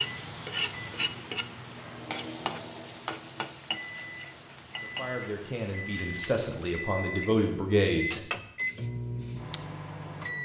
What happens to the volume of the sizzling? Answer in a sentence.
The volume of the sizzling goes down.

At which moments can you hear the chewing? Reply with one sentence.
You can't hear the chewing here.